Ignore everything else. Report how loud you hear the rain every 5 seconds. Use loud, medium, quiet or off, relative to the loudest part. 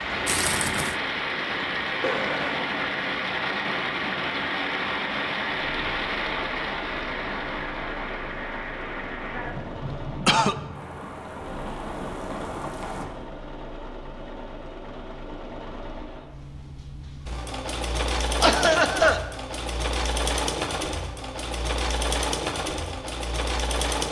loud, loud, medium, off, off.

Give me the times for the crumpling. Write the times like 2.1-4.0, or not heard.
0.2-0.9.